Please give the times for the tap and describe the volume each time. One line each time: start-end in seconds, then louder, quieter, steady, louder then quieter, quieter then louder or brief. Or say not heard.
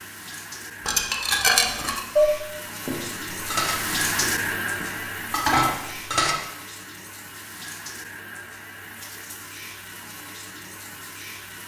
0.0-11.6 louder then quieter.